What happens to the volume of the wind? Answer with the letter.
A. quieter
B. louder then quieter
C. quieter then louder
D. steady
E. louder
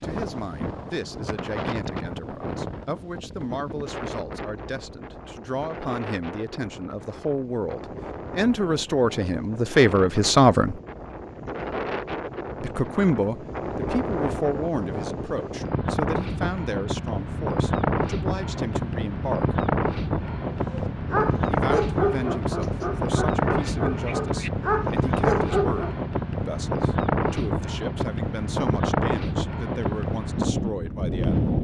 E.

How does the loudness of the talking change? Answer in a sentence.
The volume of the talking goes up, then down.